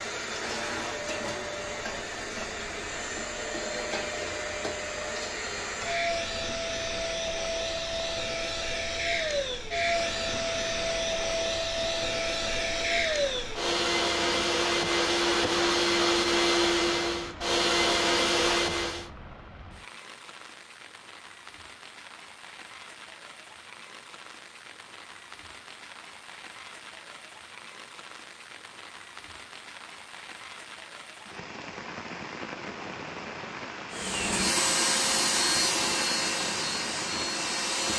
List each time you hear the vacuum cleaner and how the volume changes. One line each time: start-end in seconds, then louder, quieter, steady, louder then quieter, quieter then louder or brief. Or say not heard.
0.0-19.1 louder
33.9-37.9 quieter.